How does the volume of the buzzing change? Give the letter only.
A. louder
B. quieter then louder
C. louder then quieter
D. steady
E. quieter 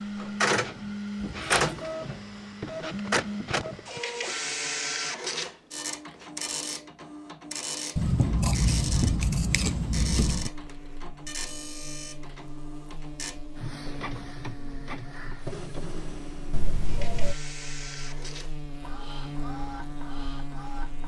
A.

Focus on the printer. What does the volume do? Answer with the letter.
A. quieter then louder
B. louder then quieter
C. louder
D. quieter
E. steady
D.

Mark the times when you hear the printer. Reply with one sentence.
The printer can be heard from 0.0 to 21.0 s.